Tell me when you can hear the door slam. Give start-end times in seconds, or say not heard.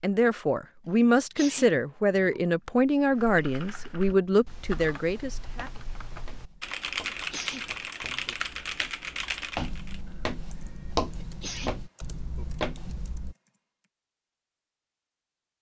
not heard.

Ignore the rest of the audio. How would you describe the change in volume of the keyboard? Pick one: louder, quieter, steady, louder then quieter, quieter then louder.
louder then quieter.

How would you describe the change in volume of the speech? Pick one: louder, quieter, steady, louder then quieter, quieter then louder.
steady.